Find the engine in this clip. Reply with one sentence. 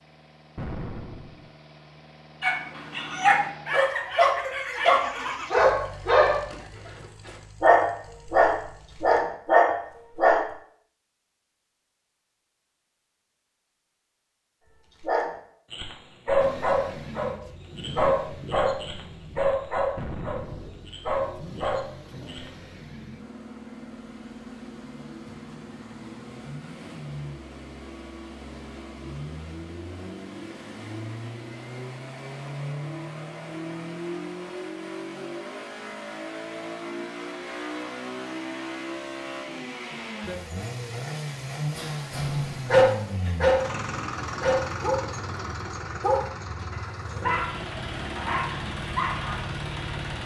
You can hear the engine from 0.0 to 9.2 s and from 16.4 to 50.2 s.